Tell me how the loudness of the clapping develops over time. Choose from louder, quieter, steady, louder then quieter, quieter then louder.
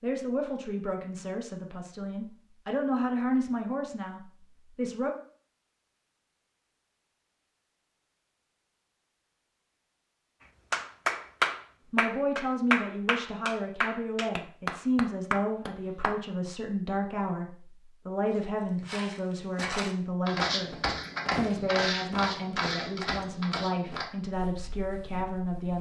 quieter.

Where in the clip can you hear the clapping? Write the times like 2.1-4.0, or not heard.
10.7-16.1.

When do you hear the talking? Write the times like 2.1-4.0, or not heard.
0.0-5.1, 11.9-25.7.